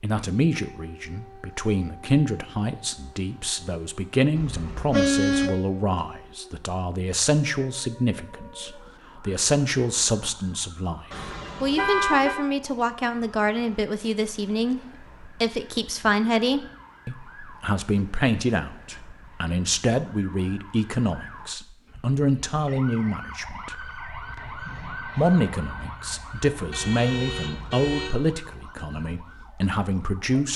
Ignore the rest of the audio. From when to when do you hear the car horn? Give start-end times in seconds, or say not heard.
4.3-5.5, 11.1-12.4, 26.7-28.1.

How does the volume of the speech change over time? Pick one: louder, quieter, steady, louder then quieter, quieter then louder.
steady.